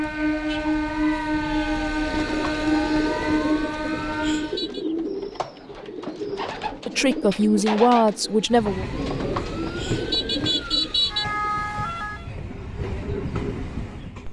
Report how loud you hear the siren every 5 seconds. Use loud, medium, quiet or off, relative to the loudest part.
medium, quiet, loud.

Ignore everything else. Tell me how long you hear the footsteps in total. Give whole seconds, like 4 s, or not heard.
not heard.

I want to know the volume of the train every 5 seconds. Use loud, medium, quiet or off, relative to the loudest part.
loud, medium, medium.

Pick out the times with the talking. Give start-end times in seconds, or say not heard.
6.8-8.8.